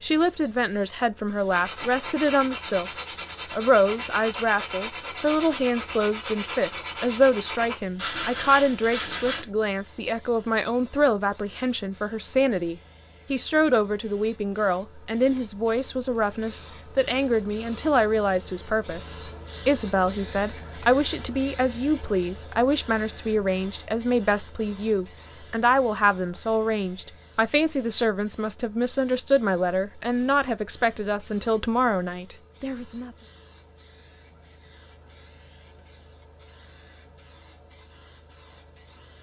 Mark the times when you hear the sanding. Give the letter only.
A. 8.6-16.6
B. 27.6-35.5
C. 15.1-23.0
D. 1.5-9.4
D.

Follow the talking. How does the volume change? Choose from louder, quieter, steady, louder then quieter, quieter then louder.
steady.